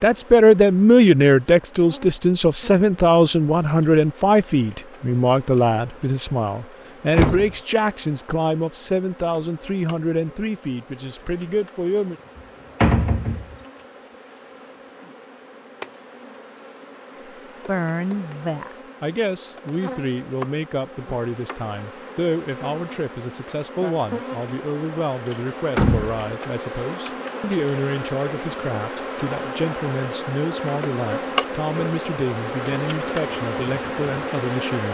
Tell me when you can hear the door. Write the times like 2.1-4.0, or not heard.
7.1-7.5, 12.8-13.6, 25.8-26.2.